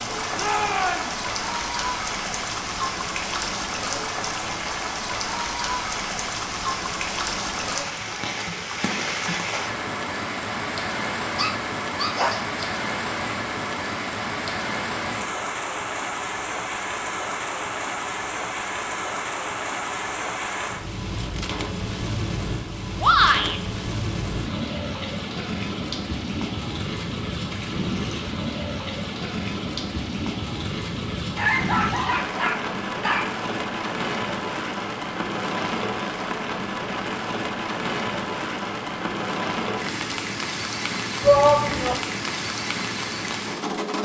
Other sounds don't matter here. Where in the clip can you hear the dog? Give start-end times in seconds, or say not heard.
11.3-12.5, 31.4-33.4.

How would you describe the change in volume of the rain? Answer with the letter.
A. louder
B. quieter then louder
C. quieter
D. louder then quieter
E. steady
E.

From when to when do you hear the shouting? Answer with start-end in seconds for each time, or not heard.
0.3-1.2, 23.0-23.6, 41.2-42.0.